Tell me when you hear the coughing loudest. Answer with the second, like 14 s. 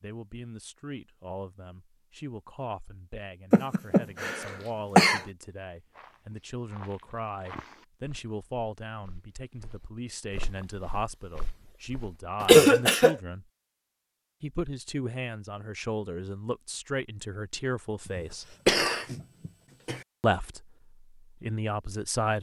13 s.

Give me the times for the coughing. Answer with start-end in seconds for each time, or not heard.
3.5-5.2, 12.4-13.2, 18.1-20.0.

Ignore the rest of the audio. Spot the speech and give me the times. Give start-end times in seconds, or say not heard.
0.0-13.4, 14.4-18.6, 20.2-22.3.